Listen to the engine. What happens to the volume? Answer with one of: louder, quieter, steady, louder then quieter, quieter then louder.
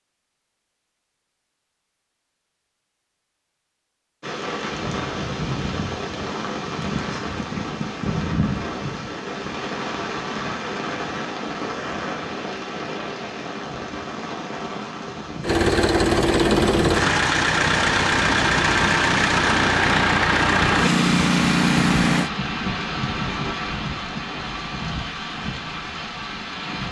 steady.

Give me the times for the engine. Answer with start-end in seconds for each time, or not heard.
15.4-22.3.